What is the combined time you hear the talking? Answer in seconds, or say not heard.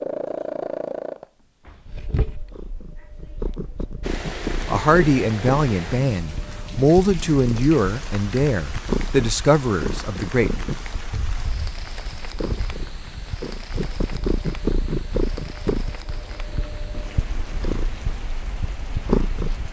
6 s.